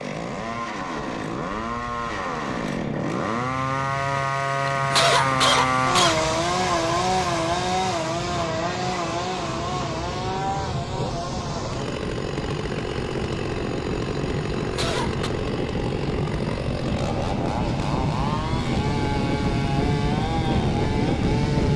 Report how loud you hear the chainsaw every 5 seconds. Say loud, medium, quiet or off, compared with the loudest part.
loud, loud, medium, medium, medium.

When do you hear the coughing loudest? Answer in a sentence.
The volume of the coughing peaks at 5 seconds.